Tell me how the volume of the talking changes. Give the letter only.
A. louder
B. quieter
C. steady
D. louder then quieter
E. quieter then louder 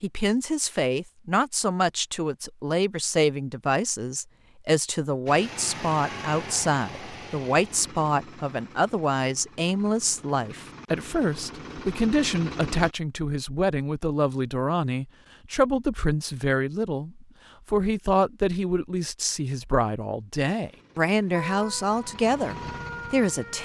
C.